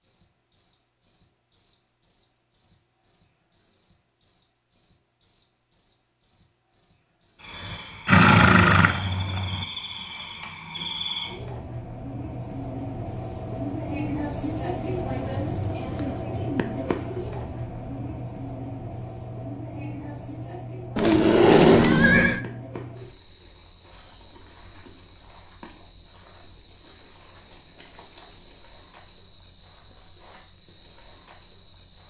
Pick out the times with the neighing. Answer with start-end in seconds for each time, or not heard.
8.1-9.7, 20.9-22.4.